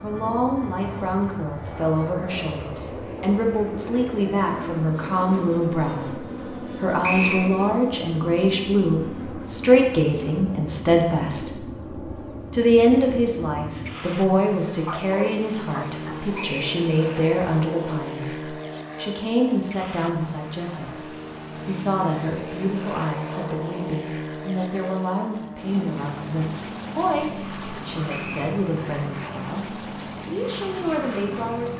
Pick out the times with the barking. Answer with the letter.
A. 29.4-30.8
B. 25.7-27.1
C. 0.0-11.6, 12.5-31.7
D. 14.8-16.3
D.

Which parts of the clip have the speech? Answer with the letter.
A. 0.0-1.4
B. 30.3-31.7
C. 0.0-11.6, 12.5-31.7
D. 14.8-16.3
C.